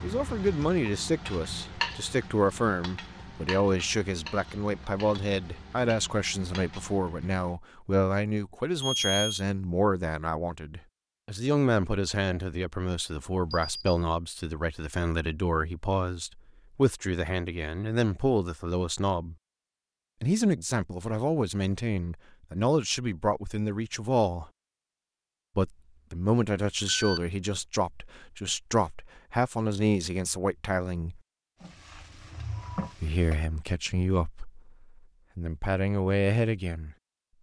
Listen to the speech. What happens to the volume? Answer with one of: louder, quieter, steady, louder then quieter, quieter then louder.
steady.